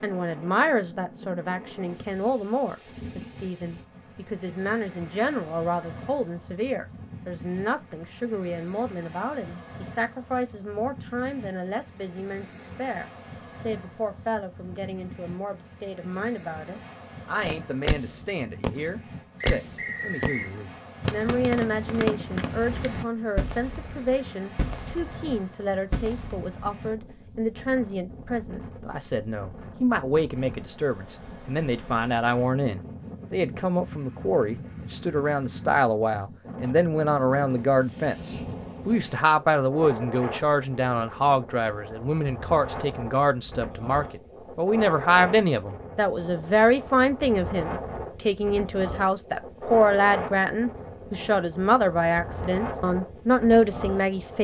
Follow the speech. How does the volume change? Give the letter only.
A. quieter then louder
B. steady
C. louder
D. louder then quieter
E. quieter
C.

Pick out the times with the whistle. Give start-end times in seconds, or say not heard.
19.4-20.5.